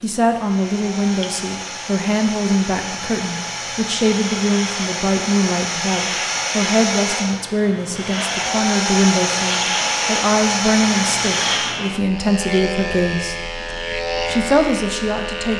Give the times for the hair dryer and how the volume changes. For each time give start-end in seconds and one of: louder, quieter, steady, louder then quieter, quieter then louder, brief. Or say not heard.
0.2-11.8 louder.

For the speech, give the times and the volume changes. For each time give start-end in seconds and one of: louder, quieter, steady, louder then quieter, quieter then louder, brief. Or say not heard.
0.0-13.3 steady
14.2-15.5 brief.